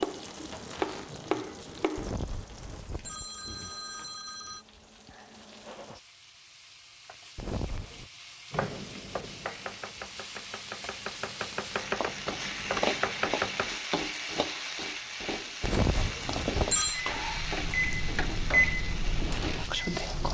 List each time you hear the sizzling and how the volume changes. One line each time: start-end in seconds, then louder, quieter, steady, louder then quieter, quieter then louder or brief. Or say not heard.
0.0-20.2 louder.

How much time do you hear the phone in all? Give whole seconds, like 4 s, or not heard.
5 s.